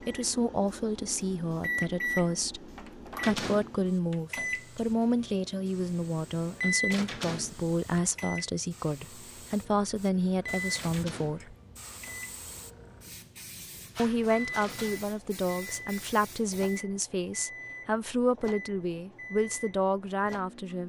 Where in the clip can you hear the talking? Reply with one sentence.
The talking can be heard from 0.1 to 11.6 s and from 13.9 to 20.8 s.